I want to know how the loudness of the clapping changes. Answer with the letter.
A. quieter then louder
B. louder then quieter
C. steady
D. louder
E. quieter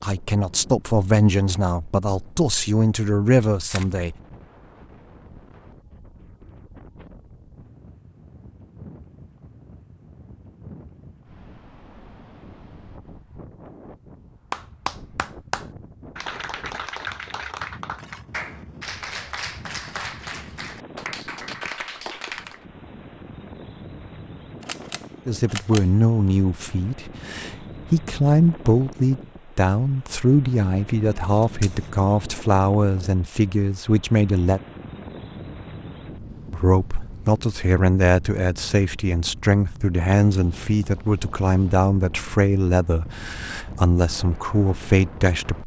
C.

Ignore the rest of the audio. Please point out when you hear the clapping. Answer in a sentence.
The clapping can be heard from 14.5 to 22.6 s.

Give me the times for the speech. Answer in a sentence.
You can hear the speech from 0.0 to 4.2 s, from 25.2 to 34.6 s and from 36.5 to 45.6 s.